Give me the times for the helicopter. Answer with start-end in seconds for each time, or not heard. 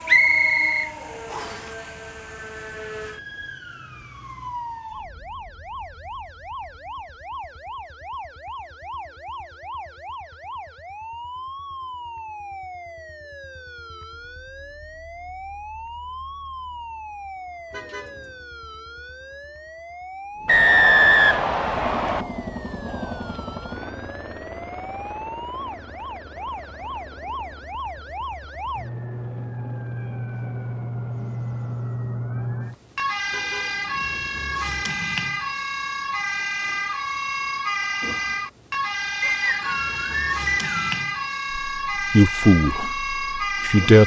21.6-32.0.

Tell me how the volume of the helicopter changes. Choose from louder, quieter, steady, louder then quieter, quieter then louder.
quieter.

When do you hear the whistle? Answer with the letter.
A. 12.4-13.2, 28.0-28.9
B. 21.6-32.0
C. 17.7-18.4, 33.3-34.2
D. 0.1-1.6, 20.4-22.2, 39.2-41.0
D.